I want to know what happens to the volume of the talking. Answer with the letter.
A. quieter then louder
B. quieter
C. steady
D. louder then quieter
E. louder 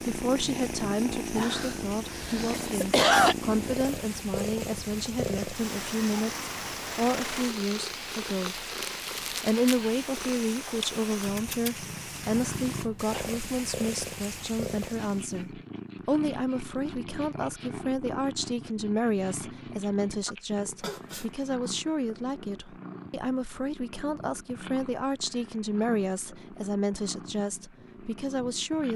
C.